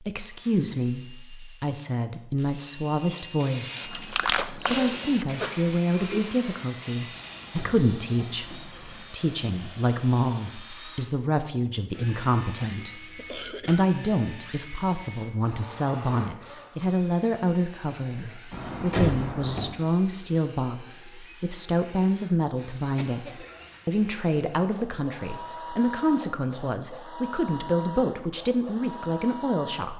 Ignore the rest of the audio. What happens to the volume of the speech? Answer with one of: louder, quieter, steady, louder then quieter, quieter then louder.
steady.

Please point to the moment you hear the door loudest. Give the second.
19 s.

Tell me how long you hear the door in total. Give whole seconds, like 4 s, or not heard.
3 s.